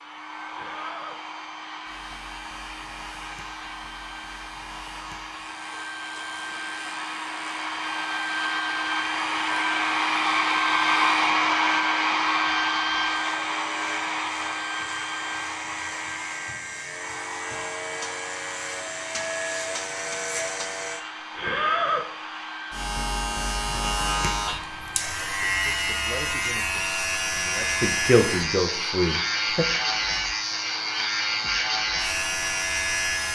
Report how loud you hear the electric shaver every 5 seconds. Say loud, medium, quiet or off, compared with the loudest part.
quiet, quiet, quiet, medium, loud, loud, loud.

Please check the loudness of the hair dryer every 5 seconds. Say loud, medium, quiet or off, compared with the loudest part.
quiet, medium, loud, quiet, quiet, quiet, quiet.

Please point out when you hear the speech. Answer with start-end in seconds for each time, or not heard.
25.1-29.6.